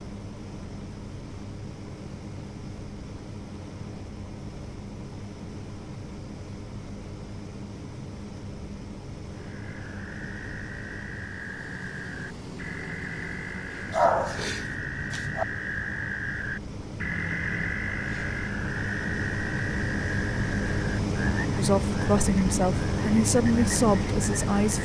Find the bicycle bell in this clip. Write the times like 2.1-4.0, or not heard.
not heard.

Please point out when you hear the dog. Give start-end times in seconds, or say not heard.
13.9-15.4.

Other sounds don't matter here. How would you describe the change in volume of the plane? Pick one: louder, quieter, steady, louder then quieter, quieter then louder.
louder.